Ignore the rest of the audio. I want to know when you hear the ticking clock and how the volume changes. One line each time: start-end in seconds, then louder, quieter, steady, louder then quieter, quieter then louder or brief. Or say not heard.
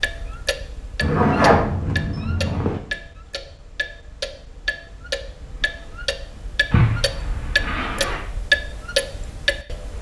0.0-9.9 louder.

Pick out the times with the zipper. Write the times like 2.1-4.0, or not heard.
1.0-2.8, 6.7-8.3.